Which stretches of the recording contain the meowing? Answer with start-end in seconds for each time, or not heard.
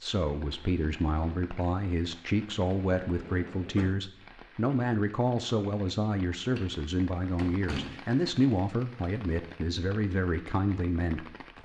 not heard.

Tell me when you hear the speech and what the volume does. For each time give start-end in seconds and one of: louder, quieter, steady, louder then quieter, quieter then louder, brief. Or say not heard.
0.0-11.6 steady.